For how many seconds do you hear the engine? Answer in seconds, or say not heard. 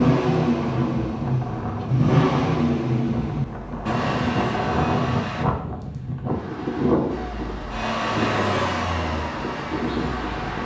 9 s.